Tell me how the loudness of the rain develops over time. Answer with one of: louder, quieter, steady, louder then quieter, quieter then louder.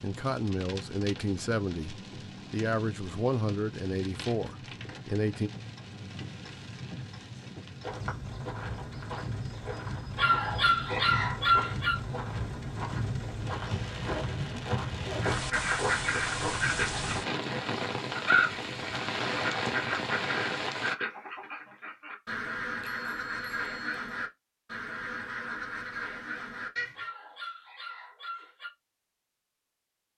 louder.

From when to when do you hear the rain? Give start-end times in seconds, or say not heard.
0.0-20.9.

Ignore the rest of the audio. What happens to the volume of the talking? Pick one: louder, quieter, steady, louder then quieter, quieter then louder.
steady.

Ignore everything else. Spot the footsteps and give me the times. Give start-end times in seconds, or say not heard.
7.8-16.8.